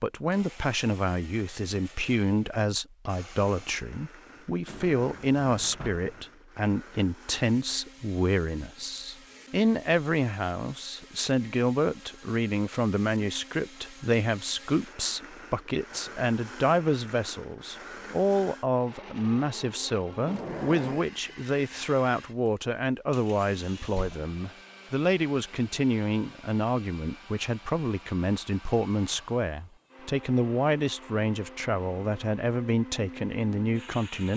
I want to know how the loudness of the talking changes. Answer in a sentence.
The volume of the talking stays about the same.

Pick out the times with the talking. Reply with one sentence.
The talking can be heard from 0.0 to 34.3 s.